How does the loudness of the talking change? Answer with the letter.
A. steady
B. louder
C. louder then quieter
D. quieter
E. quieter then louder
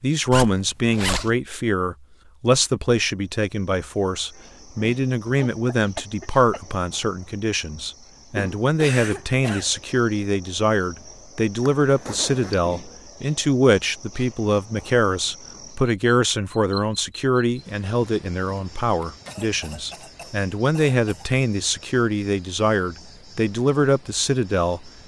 A.